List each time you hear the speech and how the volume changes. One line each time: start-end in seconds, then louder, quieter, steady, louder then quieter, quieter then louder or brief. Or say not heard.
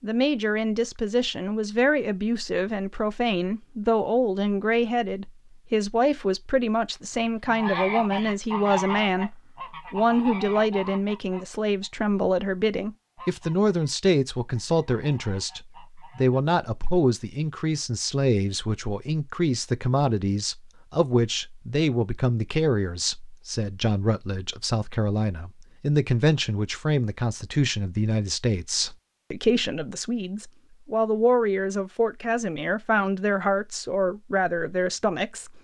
0.0-35.5 steady.